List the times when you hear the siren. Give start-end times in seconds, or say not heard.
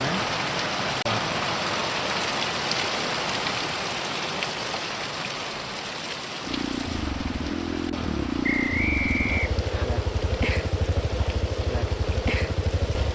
not heard.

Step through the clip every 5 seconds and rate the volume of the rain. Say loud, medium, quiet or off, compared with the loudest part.
loud, medium, quiet.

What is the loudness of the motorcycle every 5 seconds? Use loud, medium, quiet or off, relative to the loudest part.
off, loud, loud.